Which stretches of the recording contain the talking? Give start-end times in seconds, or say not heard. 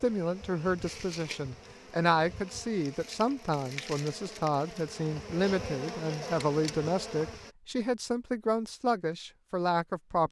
0.0-10.2.